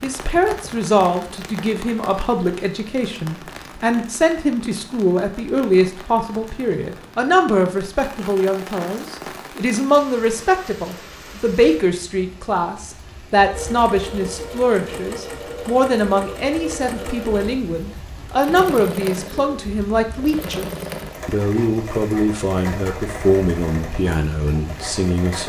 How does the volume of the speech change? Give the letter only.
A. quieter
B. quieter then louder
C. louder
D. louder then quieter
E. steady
E.